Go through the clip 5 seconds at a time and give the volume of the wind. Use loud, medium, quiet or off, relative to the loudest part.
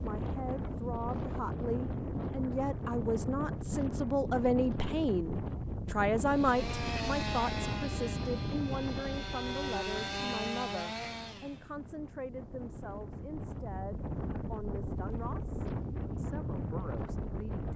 loud, loud, medium, loud.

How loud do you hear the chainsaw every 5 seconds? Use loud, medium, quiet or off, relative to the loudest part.
off, loud, loud, off.